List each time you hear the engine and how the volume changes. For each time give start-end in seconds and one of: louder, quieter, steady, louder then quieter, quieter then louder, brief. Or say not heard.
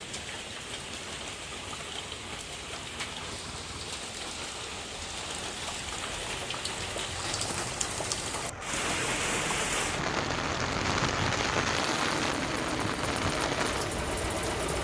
0.0-14.7 louder.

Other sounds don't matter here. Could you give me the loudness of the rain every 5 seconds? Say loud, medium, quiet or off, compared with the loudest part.
medium, loud, loud.